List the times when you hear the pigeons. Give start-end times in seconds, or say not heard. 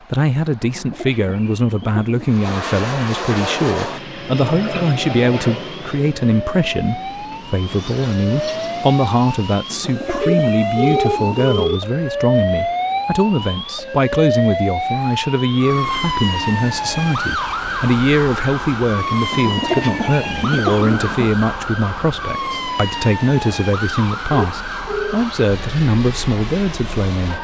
0.6-2.4, 9.7-11.6, 19.3-21.3.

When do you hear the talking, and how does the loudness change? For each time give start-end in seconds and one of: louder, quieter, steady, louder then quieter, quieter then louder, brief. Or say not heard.
0.1-27.3 steady.